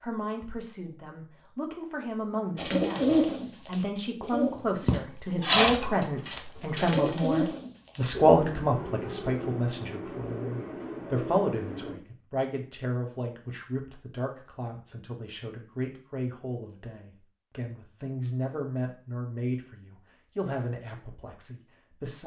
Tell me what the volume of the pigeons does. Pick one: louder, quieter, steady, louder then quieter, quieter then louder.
quieter.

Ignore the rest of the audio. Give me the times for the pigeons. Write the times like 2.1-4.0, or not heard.
2.5-11.9.